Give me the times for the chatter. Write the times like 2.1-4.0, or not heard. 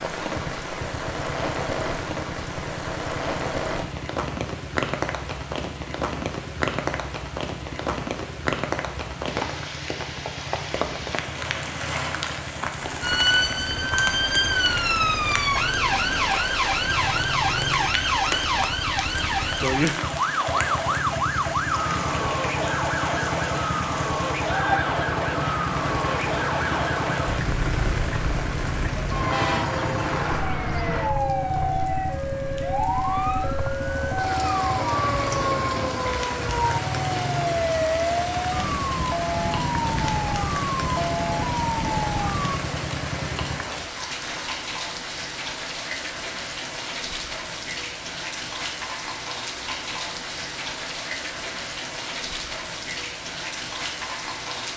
not heard.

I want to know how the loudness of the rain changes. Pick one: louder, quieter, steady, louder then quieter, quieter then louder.
steady.